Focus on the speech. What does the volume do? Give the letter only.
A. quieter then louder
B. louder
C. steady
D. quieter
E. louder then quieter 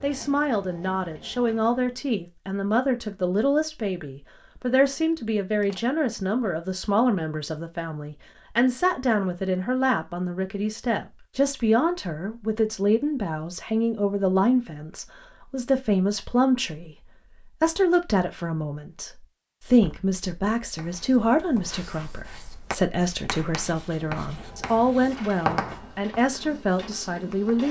C.